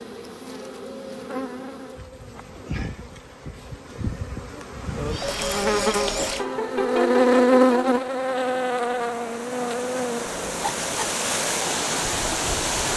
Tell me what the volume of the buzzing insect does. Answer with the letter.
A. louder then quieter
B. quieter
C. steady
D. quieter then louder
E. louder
A.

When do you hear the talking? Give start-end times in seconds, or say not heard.
not heard.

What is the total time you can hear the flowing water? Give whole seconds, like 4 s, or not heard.
8 s.